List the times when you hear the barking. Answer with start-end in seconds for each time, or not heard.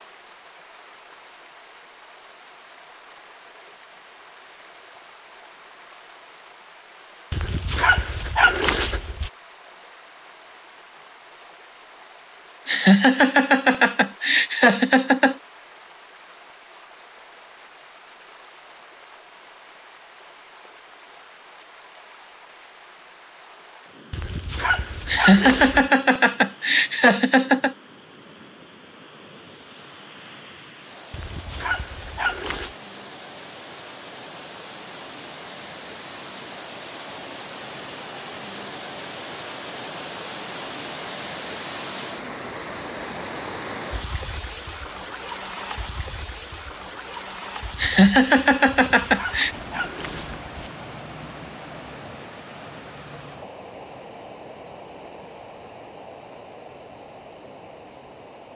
7.3-9.3, 24.1-25.9, 31.1-32.8, 48.6-50.5.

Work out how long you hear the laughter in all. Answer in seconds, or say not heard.
7 s.